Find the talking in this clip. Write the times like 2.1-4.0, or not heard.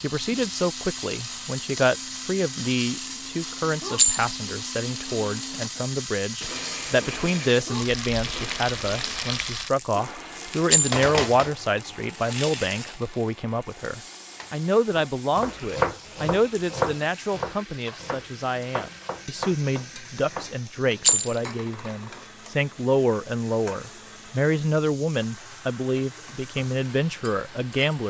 0.0-28.0.